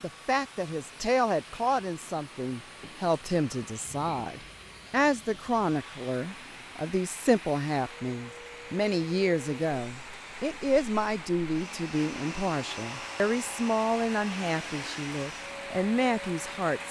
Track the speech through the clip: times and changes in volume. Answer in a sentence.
The speech can be heard from 0.0 to 16.8 s, at a steady volume.